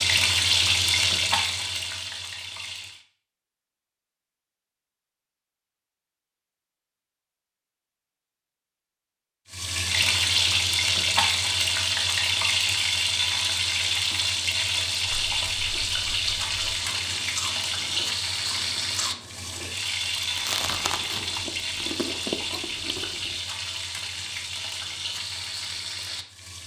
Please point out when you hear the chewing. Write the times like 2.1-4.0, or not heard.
15.1-23.4.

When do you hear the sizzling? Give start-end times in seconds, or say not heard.
0.0-3.0, 9.5-26.6.